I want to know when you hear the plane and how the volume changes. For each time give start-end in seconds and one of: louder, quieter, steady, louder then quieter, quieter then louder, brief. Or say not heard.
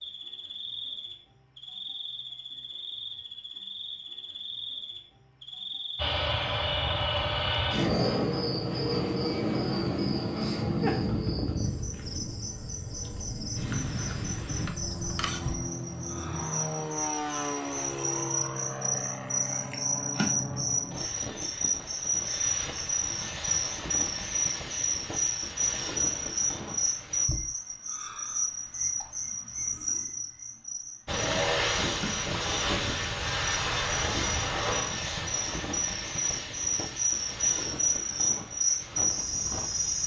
6.0-27.2 quieter
31.1-40.0 quieter.